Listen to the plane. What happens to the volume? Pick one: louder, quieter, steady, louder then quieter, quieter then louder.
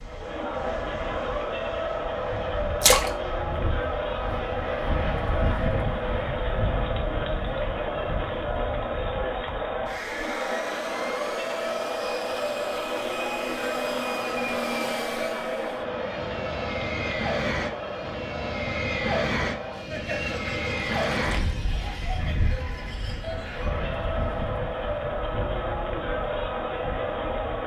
louder then quieter.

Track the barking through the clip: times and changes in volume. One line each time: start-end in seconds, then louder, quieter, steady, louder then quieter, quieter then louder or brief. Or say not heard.
not heard.